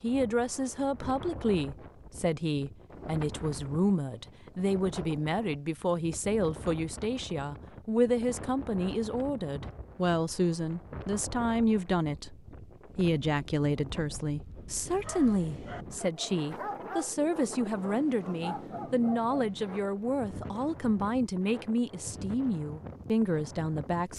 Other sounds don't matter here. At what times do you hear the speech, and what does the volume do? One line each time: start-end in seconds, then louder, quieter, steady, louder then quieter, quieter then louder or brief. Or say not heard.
0.0-12.3 steady
12.9-24.1 steady.